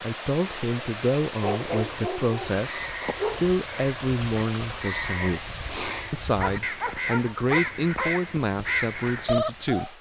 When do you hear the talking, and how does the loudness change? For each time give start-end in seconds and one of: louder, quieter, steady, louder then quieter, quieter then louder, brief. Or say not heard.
0.0-9.9 steady.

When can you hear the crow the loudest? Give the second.
9 s.